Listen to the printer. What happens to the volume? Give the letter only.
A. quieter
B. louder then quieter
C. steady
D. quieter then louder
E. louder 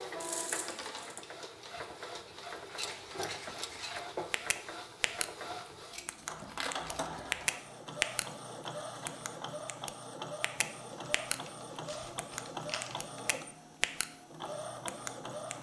C.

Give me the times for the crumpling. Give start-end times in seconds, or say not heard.
0.2-1.2, 5.9-7.5, 10.9-13.2.